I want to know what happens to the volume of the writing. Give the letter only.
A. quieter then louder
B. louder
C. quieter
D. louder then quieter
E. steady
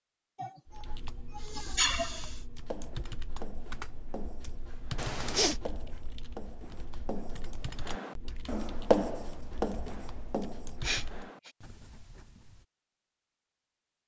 D.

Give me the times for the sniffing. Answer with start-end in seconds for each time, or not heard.
0.3-2.4, 5.0-5.5, 10.8-11.5.